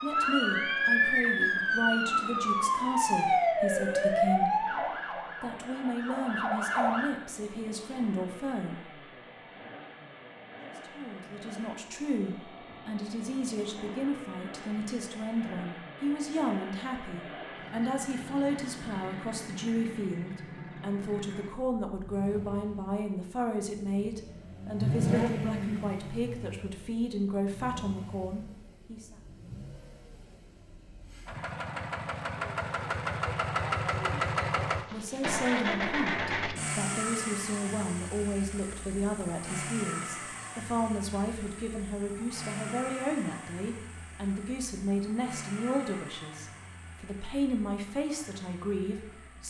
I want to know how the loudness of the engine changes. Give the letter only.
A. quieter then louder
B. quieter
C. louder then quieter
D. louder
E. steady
C.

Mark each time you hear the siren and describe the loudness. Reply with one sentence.
The siren can be heard from 0.0 to 7.1 s, getting quieter.